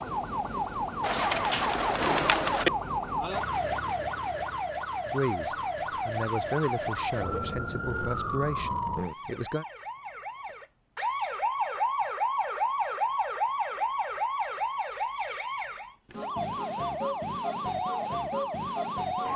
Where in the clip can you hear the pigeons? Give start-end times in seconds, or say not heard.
1.0-2.7.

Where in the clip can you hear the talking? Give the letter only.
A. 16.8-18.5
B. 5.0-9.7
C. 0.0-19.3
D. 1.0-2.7
B.